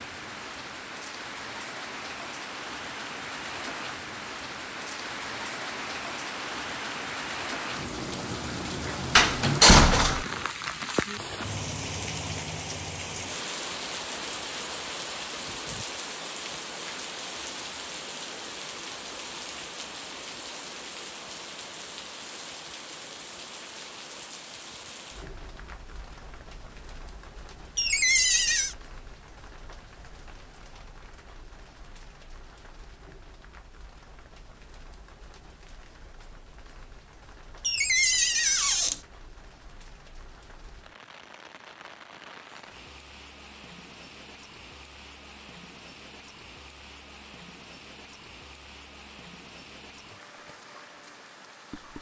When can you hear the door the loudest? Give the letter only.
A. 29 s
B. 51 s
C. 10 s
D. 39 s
C.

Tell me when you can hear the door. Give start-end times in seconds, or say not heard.
9.2-10.2, 27.8-28.8, 37.6-39.0.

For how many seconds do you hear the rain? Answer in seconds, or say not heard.
52 s.